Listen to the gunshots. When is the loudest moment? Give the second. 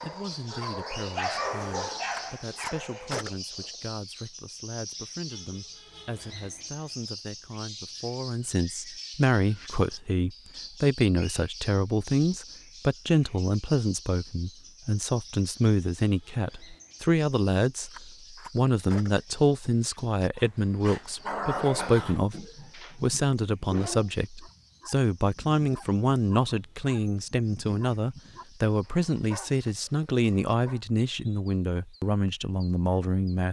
3 s.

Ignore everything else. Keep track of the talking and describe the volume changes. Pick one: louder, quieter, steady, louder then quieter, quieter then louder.
louder.